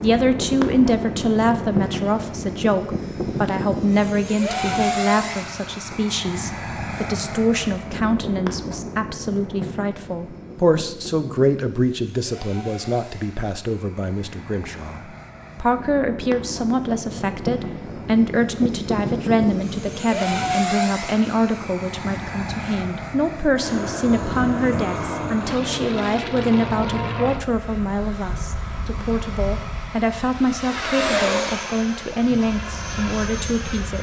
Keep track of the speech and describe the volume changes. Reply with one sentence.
The loudness of the speech stays about the same.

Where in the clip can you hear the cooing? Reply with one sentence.
The cooing can't be heard in this clip.